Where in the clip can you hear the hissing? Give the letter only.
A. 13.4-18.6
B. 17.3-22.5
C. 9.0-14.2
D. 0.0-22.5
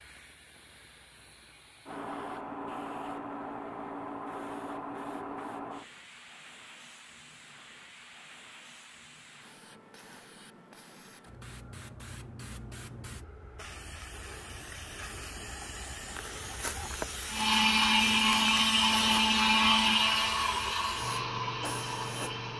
D.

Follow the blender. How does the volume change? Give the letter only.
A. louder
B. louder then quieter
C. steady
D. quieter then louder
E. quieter
E.